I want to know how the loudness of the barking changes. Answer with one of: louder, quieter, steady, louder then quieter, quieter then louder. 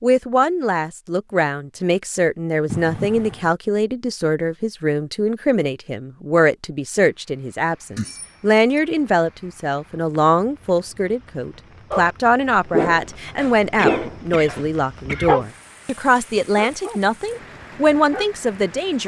quieter.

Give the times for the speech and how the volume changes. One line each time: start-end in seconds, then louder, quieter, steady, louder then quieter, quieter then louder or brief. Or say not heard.
0.0-19.0 steady.